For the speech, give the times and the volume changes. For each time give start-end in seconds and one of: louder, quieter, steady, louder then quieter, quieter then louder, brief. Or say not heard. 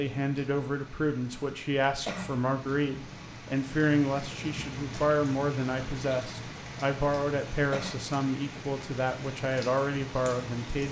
0.0-10.8 steady.